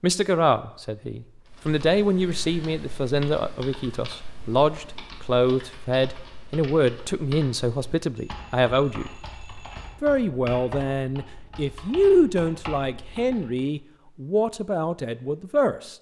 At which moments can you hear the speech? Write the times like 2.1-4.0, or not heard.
0.0-9.1, 10.0-15.9.